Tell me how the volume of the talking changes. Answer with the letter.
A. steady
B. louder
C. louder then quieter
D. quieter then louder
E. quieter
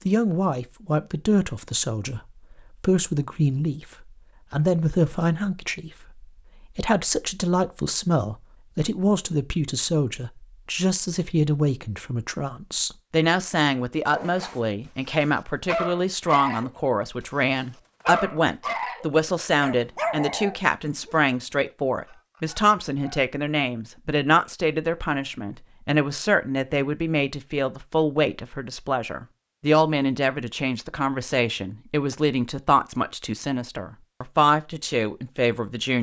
A.